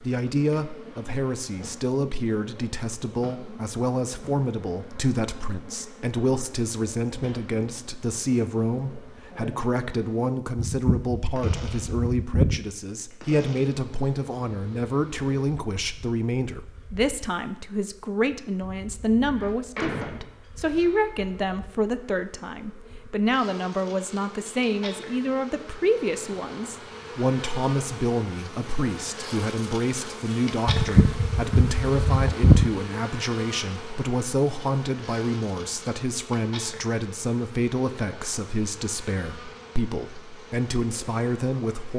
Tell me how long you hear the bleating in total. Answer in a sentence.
The bleating can be heard for 4 seconds in total.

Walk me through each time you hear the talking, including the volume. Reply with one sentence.
You can hear the talking from 0.0 to 41.9 s, at a steady volume.